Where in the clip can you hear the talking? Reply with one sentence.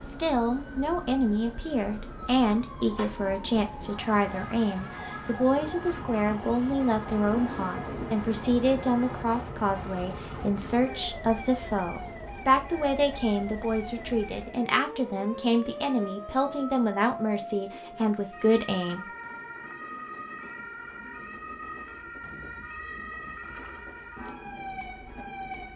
The talking can be heard from 0.1 to 19.1 s.